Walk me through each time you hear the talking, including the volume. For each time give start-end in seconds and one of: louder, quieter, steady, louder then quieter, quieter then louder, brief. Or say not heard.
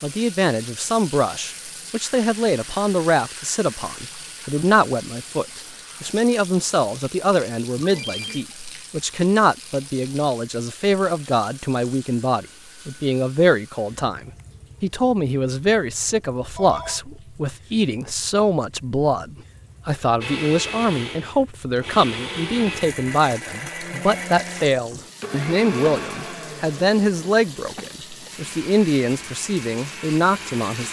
0.0-30.8 steady.